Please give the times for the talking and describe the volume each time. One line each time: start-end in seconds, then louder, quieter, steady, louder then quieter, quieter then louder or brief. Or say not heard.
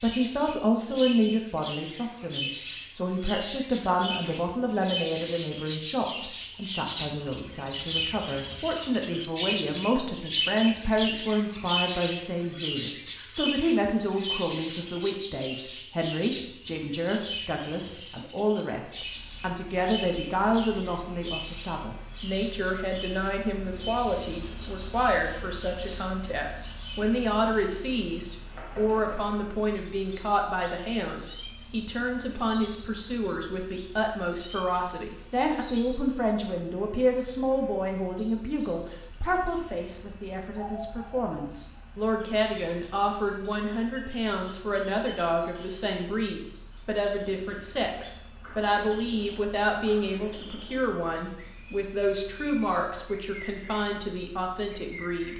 0.0-55.3 steady.